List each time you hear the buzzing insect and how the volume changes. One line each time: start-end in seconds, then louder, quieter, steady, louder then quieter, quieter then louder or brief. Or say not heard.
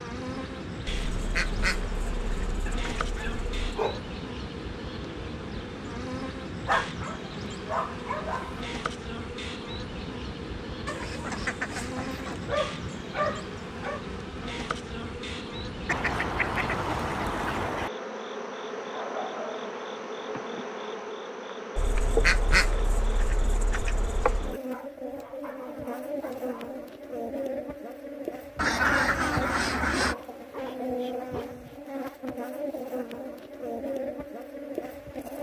0.0-35.3 steady.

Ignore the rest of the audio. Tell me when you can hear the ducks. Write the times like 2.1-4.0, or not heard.
0.8-3.8, 10.8-12.4, 15.8-17.9, 21.8-24.6, 28.6-30.1.